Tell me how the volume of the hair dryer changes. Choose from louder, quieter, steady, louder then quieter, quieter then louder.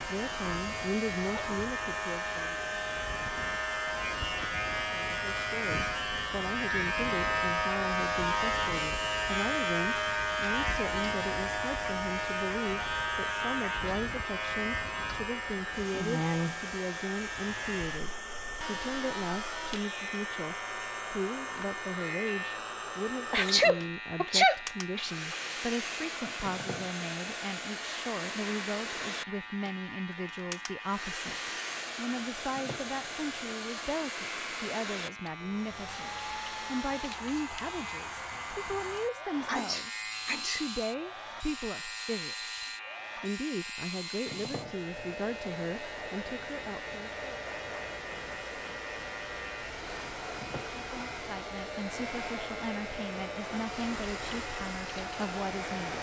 steady.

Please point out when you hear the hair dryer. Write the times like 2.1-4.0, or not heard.
0.0-55.9.